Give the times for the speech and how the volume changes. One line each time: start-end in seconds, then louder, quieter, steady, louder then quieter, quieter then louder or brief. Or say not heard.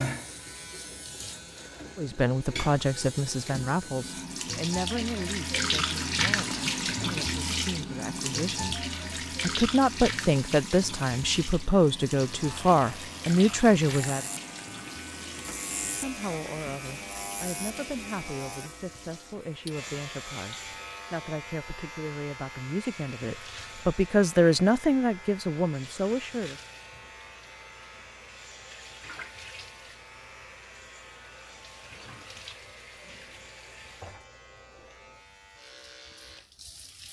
1.9-14.2 quieter then louder
15.8-26.6 louder.